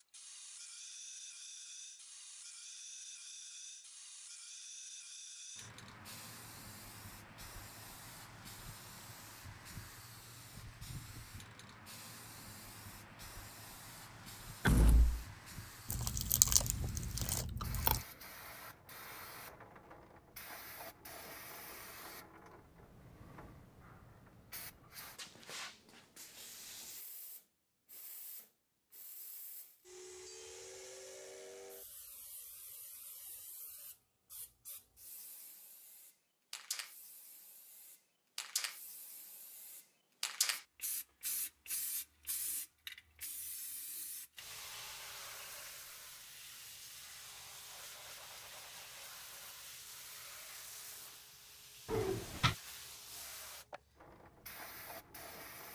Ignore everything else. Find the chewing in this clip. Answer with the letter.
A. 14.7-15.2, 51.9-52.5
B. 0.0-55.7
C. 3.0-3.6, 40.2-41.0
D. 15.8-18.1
D.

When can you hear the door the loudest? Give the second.
15 s.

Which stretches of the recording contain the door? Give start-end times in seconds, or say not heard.
14.7-15.2, 51.9-52.5.